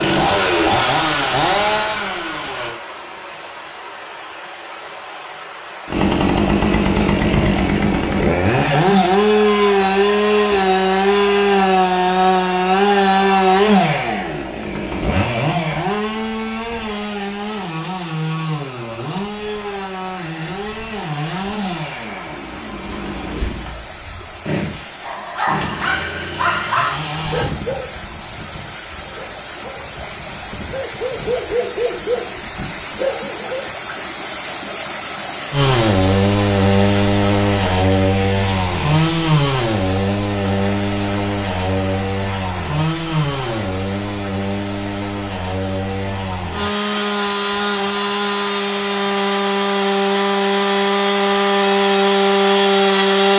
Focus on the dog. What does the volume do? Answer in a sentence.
The volume of the dog goes down, then up.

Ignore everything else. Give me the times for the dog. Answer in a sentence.
You can hear the dog from 25.0 to 33.7 s.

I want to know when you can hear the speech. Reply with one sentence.
The speech can't be heard in this clip.